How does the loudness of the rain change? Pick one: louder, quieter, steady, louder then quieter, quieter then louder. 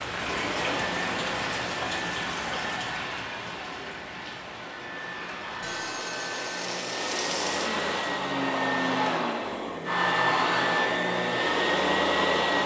quieter then louder.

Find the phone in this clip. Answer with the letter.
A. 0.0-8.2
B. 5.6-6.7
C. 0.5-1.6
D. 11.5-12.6
B.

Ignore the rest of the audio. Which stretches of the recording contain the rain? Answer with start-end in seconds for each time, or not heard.
0.0-8.2.